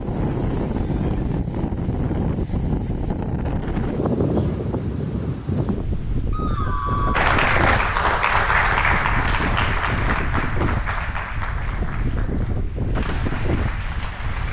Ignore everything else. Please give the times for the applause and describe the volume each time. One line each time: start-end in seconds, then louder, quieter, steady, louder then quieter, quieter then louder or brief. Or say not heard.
7.1-14.4 quieter.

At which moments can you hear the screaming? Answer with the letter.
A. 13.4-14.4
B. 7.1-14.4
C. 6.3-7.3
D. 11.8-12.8
C.